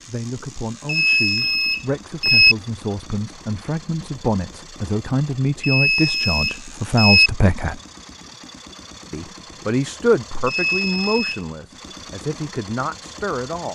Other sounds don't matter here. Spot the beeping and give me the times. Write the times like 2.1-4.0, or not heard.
0.8-2.5, 5.6-7.3, 10.4-11.4.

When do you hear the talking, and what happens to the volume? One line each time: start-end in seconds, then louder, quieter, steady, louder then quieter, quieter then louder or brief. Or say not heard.
0.1-7.8 louder
9.1-13.6 quieter.